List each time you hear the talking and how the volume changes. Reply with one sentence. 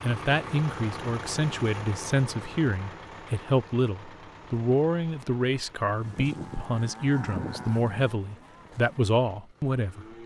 The talking can be heard from 0.0 to 10.1 s, at a steady volume.